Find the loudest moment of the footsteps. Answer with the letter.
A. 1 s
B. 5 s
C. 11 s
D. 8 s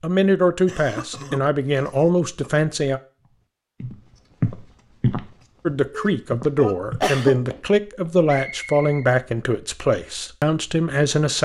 B.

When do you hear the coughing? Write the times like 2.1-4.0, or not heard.
0.7-2.5, 6.0-7.3.